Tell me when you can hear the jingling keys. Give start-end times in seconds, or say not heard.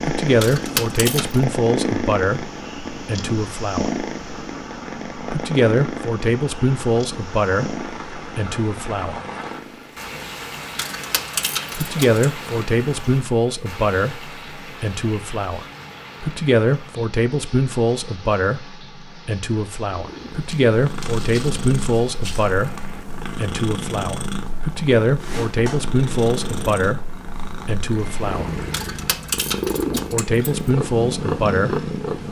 0.4-1.4, 10.8-12.2, 28.7-30.6.